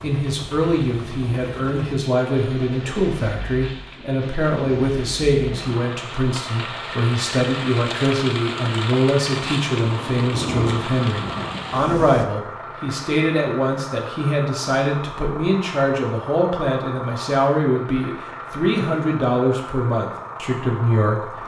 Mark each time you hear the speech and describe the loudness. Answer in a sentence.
The speech can be heard from 0.0 to 21.4 s, at a steady volume.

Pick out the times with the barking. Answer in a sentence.
You can't hear the barking here.